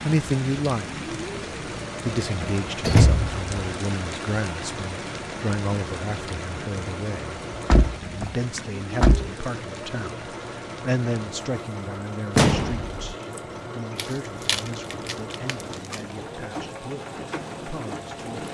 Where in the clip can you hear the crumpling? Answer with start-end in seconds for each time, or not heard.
13.9-16.1.